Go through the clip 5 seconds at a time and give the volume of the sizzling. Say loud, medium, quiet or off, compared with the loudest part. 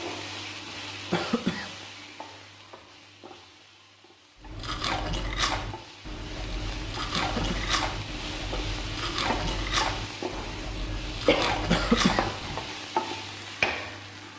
medium, medium, loud.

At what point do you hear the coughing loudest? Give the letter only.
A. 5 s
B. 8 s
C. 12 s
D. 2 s
C.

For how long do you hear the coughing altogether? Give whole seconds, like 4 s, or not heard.
2 s.